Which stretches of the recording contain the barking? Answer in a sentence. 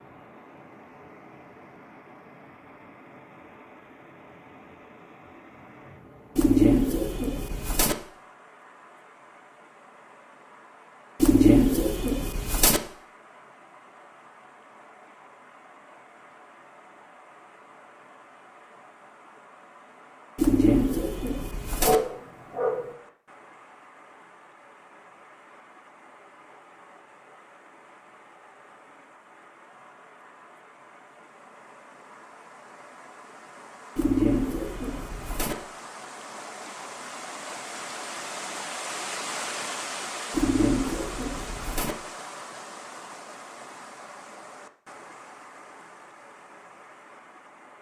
The barking can be heard from 21.8 to 22.9 s.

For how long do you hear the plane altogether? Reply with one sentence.
The plane can't be heard in this clip.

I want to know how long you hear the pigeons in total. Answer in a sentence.
You can hear the pigeons for 8 seconds altogether.